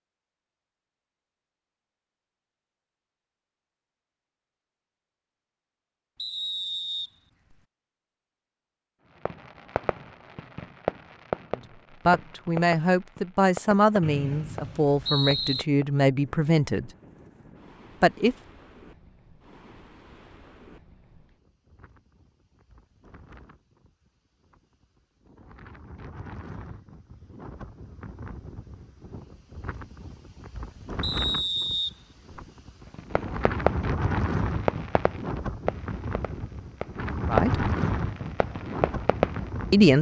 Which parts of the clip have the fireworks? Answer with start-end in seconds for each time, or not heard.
9.2-15.9, 32.9-39.5.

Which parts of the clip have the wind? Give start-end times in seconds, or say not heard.
16.1-39.9.